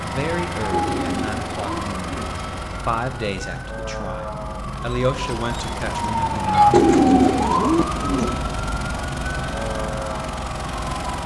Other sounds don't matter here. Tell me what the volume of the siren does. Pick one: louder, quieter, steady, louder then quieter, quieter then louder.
louder then quieter.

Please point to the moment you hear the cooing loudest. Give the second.
7 s.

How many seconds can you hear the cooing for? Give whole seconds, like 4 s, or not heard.
3 s.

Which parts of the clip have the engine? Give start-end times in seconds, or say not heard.
0.0-11.2.